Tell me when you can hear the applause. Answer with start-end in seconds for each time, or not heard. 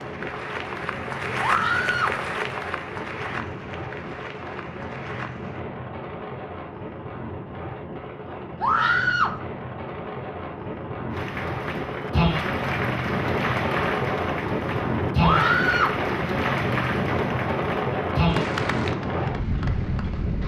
0.0-5.6, 11.1-20.4.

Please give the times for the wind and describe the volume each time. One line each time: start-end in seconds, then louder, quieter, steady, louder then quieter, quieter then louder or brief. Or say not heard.
0.0-20.4 louder.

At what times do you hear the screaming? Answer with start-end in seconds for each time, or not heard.
1.4-2.2, 8.6-9.3, 15.2-16.0.